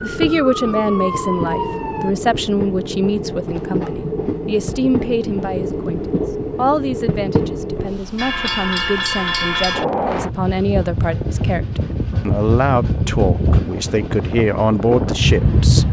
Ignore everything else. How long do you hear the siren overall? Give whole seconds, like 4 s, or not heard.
2 s.